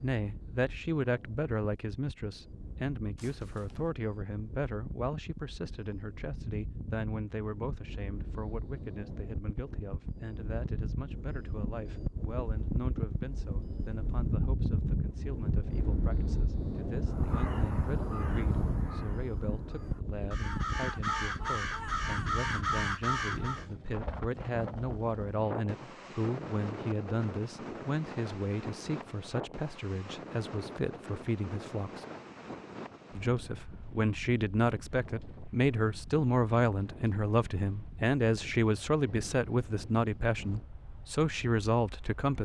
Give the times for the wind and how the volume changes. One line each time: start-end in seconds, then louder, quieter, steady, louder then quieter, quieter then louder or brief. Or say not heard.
0.0-42.4 louder then quieter.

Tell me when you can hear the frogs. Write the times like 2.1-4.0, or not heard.
not heard.